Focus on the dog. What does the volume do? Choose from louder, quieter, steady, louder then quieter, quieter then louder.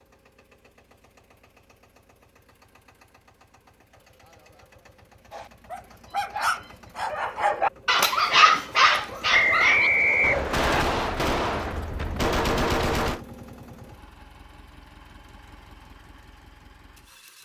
louder then quieter.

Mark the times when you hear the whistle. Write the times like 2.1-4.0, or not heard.
9.3-10.8.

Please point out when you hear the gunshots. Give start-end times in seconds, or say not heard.
10.2-13.2.